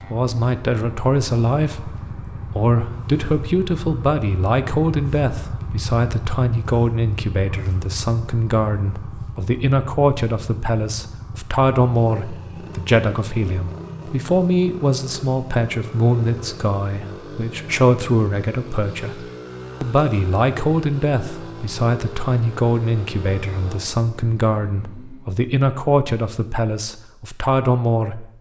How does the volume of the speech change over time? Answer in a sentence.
The volume of the speech stays about the same.